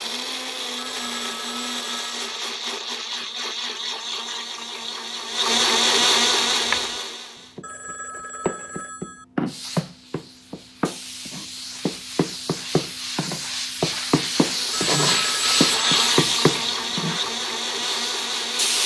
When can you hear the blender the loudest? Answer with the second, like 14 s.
6 s.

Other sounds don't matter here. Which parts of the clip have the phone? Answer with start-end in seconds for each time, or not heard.
0.8-2.2, 7.6-9.2, 14.7-16.0.